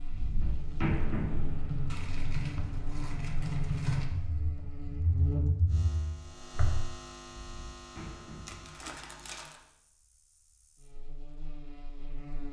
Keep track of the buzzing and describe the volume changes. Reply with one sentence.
The loudness of the buzzing goes up, then down.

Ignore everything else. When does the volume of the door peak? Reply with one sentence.
The loudest moment of the door is at 1 second.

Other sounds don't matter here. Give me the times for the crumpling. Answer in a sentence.
You can hear the crumpling from 1.9 to 4.1 s and from 8.4 to 9.6 s.